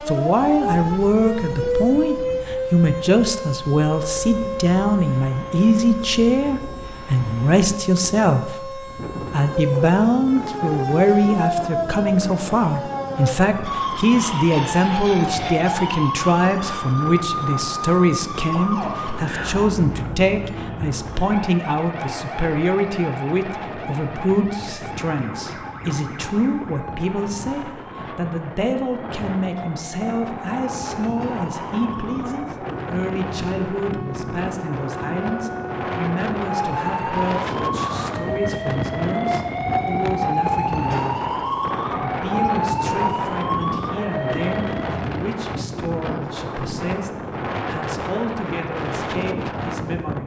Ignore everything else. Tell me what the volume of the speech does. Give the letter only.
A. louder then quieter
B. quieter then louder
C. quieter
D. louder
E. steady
C.